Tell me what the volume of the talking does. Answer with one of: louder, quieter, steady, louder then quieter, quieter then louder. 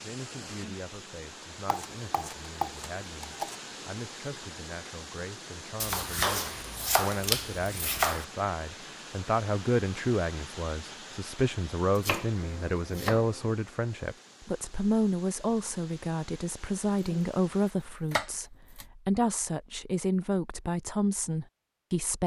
louder.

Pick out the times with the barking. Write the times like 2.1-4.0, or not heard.
not heard.